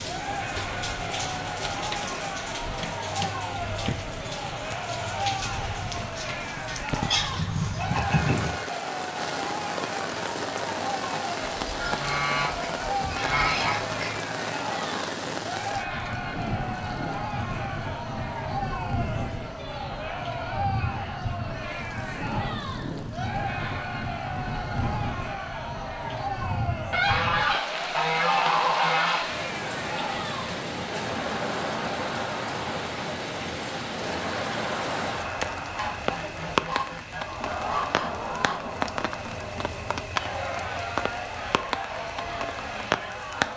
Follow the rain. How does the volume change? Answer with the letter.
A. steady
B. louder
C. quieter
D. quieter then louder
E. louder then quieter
A.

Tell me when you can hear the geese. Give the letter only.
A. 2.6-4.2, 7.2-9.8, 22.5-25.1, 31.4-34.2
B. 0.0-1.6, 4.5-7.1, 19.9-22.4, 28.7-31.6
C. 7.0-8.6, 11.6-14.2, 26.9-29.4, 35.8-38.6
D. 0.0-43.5
C.